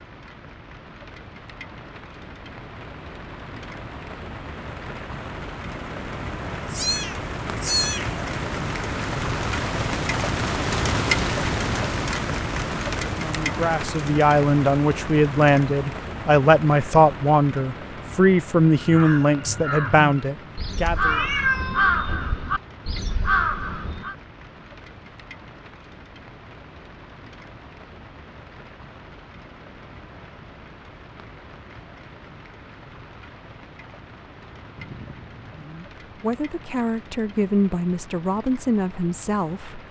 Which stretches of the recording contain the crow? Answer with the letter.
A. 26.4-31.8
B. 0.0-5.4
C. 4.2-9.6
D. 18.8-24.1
D.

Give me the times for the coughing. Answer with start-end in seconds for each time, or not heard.
not heard.